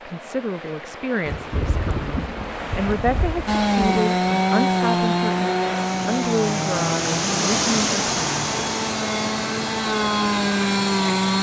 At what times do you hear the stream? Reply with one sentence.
You can hear the stream from 0.0 to 11.3 s.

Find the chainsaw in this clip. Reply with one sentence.
You can hear the chainsaw from 3.5 to 11.3 s.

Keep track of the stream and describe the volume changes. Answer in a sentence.
The volume of the stream goes up, then down.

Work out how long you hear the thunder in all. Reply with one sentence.
The thunder can be heard for 3 seconds in total.